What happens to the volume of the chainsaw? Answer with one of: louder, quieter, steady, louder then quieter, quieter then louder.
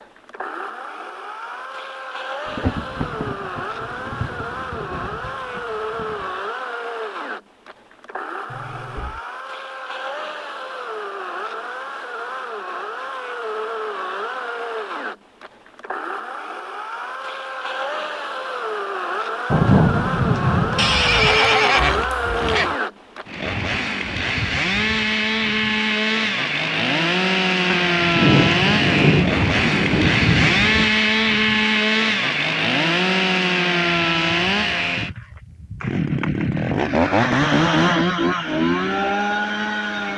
louder.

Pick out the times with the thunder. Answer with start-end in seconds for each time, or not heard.
2.5-6.2, 19.5-21.4, 27.6-30.9.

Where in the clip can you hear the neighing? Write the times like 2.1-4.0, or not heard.
8.4-9.2, 20.8-22.8.